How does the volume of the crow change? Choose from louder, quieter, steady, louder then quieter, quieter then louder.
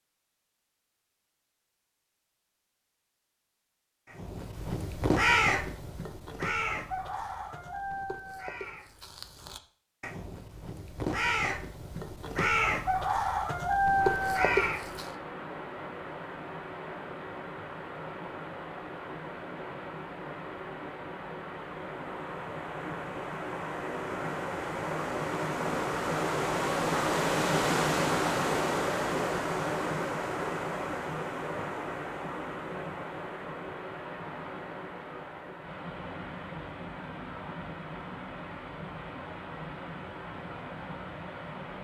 quieter then louder.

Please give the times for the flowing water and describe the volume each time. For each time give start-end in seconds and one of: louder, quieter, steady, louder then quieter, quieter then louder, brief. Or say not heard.
13.9-41.8 louder then quieter.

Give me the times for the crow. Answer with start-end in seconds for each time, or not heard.
4.1-15.1.